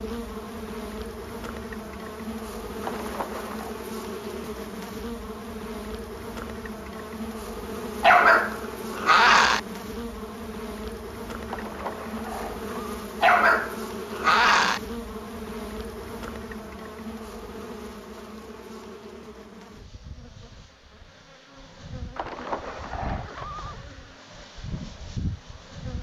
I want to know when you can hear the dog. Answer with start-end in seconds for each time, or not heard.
8.0-9.6, 13.2-14.8.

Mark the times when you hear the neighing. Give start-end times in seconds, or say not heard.
2.8-3.8, 11.4-12.9, 22.1-23.9.